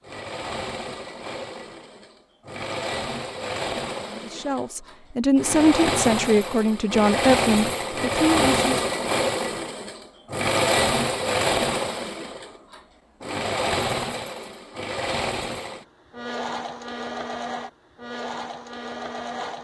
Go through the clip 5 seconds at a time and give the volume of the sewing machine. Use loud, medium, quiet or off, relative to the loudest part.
medium, loud, loud, medium.